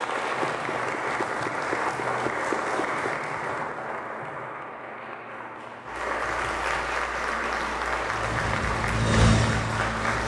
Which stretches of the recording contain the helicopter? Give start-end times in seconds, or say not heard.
8.0-10.2.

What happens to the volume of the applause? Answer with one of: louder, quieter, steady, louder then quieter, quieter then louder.
quieter then louder.